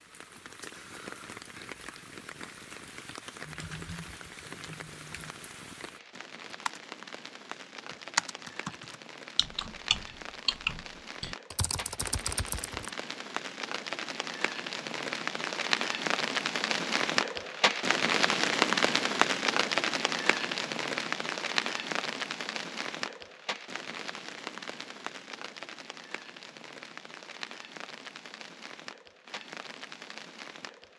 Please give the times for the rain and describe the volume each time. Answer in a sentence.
You can hear the rain from 0.0 to 30.9 s, getting louder then quieter.